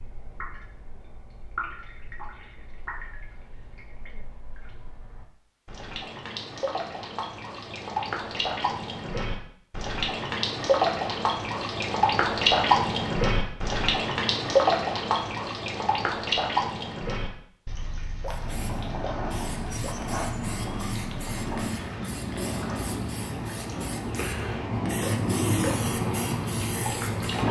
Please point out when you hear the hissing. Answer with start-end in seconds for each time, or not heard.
18.2-27.4.